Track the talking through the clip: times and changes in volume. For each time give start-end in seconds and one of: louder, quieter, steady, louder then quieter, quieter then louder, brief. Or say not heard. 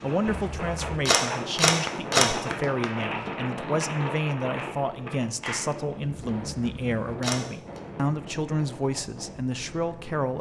0.0-10.3 steady.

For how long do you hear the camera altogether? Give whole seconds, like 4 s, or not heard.
3 s.